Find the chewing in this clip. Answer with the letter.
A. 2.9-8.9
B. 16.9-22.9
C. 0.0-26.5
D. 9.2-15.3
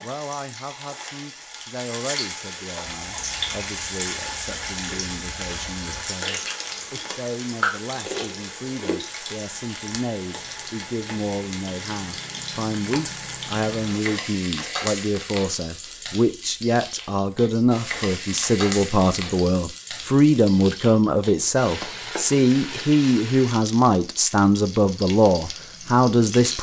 A.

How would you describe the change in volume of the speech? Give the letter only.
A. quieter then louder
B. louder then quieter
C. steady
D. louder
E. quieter
D.